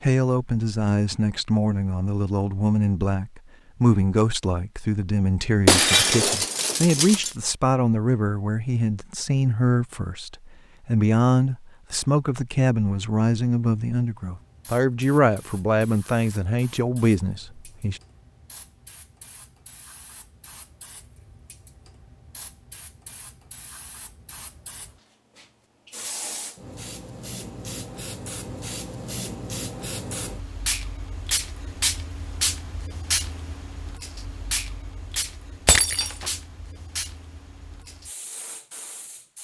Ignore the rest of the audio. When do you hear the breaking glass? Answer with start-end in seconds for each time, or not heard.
5.7-7.3, 35.6-36.3.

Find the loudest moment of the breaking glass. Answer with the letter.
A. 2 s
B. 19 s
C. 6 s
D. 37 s
C.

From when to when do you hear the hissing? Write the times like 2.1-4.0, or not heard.
14.2-39.3.